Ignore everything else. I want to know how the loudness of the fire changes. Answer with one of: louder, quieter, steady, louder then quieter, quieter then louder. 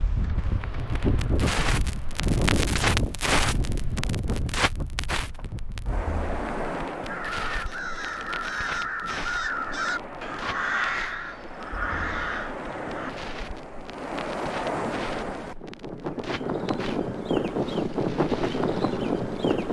quieter.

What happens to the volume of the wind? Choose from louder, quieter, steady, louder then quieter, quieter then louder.
quieter then louder.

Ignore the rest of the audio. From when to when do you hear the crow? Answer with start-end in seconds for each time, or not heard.
7.0-13.2.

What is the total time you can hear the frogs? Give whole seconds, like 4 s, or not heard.
not heard.